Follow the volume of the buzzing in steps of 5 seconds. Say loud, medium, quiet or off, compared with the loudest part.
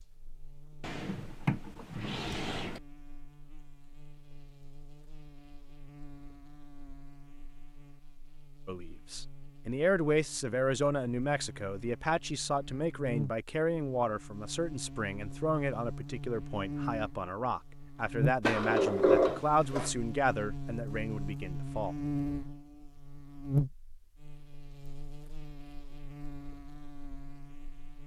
quiet, quiet, medium, loud, loud, quiet.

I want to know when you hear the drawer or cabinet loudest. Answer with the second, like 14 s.
19 s.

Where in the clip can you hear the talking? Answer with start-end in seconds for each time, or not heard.
8.7-21.9.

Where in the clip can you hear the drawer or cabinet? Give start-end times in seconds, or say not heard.
0.8-2.8, 18.4-19.9.